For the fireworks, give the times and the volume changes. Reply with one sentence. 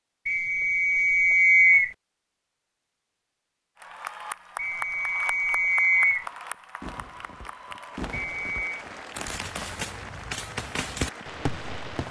You can hear the fireworks from 6.2 to 12.0 s, getting louder.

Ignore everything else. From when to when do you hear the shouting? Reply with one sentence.
The shouting can't be heard in this clip.